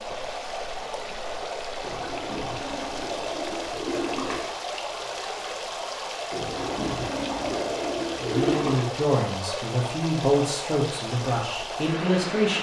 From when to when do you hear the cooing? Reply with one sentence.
The cooing can be heard from 1.8 to 4.5 s and from 6.3 to 8.8 s.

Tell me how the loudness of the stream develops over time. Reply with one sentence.
The loudness of the stream stays about the same.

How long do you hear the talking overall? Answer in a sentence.
You can hear the talking for 4 seconds altogether.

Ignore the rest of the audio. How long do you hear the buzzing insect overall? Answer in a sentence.
You can't hear the buzzing insect here.